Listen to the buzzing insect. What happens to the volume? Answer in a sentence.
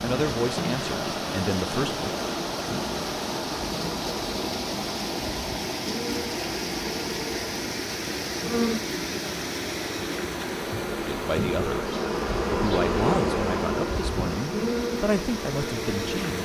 The volume of the buzzing insect goes up.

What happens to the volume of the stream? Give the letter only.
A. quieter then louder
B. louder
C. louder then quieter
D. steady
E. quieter
E.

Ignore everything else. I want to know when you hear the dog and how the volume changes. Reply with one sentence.
You can't hear the dog here.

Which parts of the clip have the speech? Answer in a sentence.
The speech can be heard from 0.0 to 2.1 s, from 10.9 to 11.9 s and from 12.5 to 16.3 s.